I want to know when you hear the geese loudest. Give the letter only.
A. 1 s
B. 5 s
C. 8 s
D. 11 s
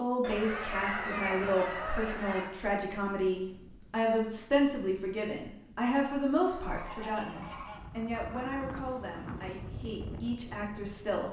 A.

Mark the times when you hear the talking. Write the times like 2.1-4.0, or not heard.
0.0-11.2.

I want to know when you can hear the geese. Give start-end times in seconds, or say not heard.
0.2-2.5, 6.6-7.8.